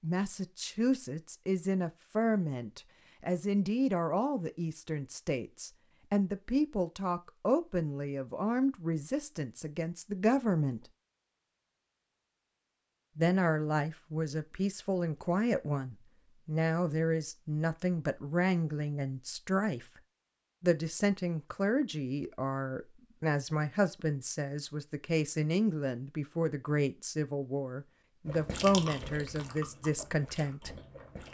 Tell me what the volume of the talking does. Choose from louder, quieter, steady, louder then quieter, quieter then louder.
steady.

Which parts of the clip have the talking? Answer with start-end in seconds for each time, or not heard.
0.0-10.8, 13.2-20.0, 20.6-30.8.